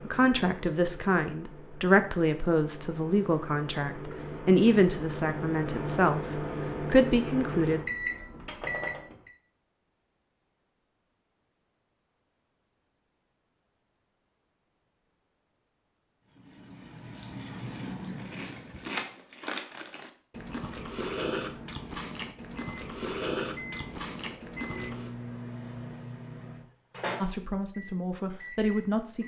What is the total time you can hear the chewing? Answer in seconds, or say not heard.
8 s.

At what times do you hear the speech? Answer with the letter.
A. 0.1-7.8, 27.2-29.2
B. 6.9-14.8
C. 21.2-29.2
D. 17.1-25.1
A.